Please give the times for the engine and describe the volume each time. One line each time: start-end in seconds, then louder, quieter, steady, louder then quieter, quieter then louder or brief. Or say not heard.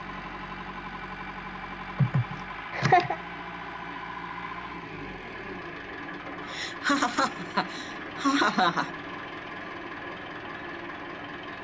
0.0-11.5 steady.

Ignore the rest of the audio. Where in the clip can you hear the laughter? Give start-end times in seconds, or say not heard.
1.9-3.2, 6.5-8.9.